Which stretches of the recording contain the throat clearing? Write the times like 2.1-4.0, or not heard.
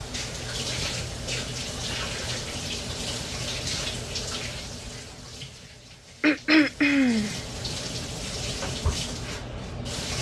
6.2-7.3.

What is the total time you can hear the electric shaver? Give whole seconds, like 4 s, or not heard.
not heard.